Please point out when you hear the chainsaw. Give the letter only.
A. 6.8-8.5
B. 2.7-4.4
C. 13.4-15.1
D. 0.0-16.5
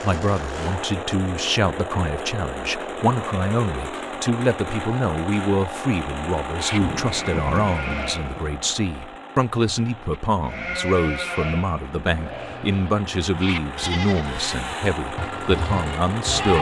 D.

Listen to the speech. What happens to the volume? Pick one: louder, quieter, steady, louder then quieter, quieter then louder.
steady.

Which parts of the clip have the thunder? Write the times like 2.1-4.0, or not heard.
6.8-8.5.